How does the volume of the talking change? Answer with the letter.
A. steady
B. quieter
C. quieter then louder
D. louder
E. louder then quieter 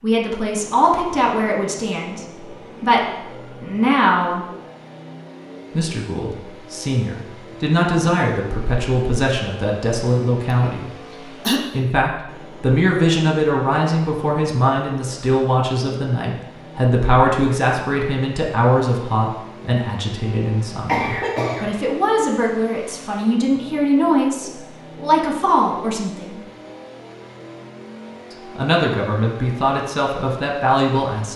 A.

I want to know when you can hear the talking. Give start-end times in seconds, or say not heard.
0.0-4.5, 5.8-10.8, 11.7-26.4, 28.3-31.3.